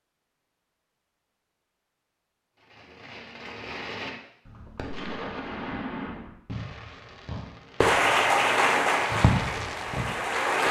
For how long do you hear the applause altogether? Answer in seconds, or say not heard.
3 s.